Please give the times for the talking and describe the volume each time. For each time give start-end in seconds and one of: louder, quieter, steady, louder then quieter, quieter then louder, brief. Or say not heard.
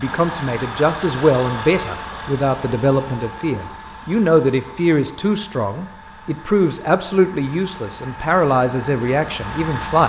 0.0-10.0 steady.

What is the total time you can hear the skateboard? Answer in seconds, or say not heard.
not heard.